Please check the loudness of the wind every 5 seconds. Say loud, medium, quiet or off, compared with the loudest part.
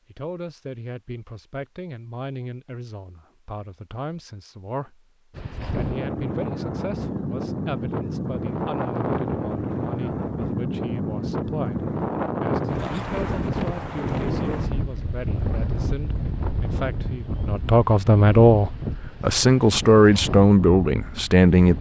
off, loud, loud, medium, medium.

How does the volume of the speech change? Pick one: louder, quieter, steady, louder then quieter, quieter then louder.
louder.